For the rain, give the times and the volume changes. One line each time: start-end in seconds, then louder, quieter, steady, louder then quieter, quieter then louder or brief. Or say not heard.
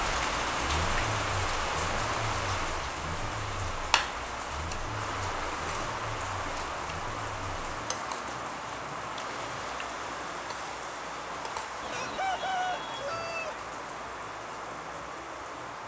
0.0-15.8 quieter.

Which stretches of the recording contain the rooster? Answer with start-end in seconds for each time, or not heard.
11.8-13.7.